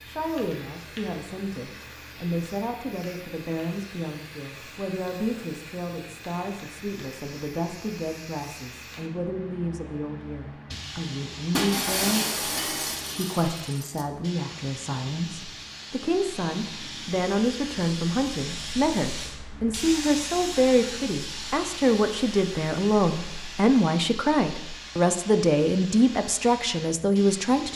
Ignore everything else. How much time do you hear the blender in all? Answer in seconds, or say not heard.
not heard.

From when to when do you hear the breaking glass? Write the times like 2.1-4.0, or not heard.
11.5-14.1.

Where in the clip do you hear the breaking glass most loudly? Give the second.
12 s.